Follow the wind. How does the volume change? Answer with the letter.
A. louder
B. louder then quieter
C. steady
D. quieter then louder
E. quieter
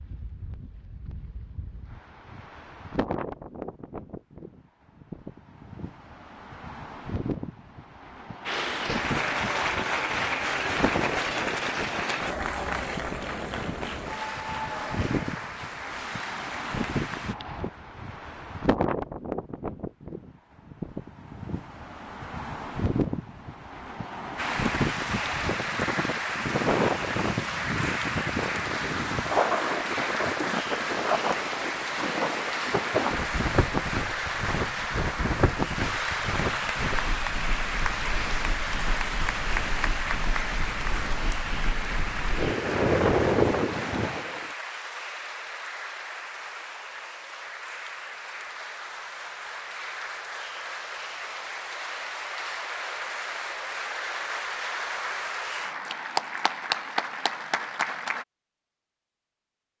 A.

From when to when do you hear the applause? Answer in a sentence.
You can hear the applause from 8.4 to 17.4 s and from 24.4 to 58.2 s.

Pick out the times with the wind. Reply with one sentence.
The wind can be heard from 0.0 to 44.5 s.